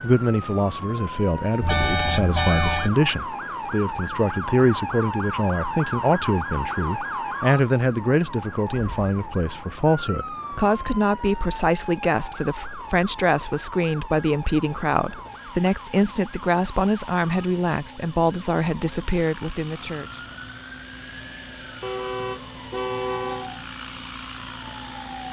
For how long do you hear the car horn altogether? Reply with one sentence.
You can hear the car horn for 3 seconds altogether.